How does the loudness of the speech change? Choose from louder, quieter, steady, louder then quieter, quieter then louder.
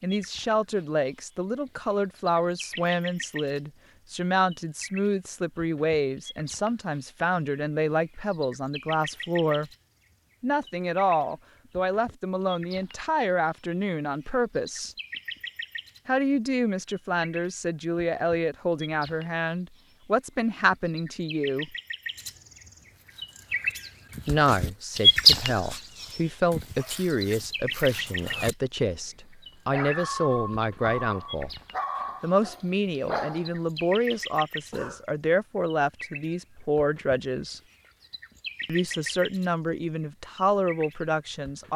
steady.